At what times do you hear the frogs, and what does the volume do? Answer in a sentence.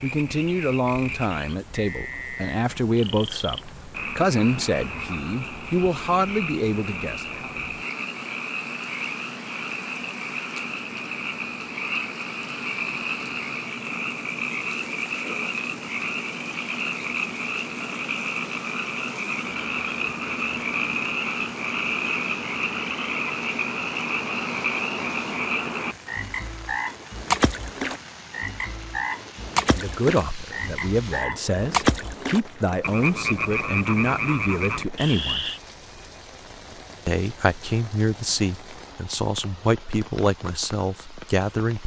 You can hear the frogs from 0.0 to 35.6 s, getting louder.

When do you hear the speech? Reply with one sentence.
You can hear the speech from 0.0 to 7.5 s, from 29.7 to 35.5 s and from 37.0 to 41.8 s.